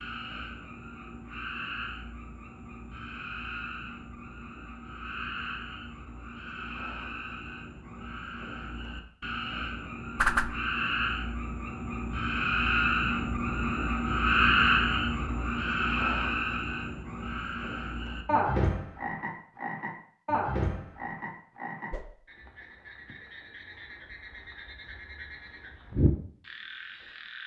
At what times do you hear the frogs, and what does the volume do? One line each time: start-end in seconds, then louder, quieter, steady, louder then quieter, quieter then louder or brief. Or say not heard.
0.0-27.4 louder then quieter.